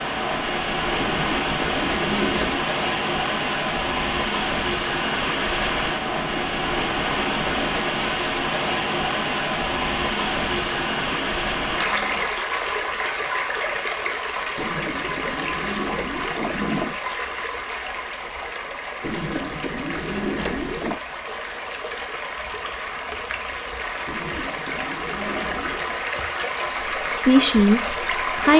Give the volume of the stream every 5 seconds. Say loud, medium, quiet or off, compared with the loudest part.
loud, loud, loud, medium, medium, loud.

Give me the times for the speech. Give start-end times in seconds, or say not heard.
26.8-28.5.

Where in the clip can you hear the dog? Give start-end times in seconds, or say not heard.
not heard.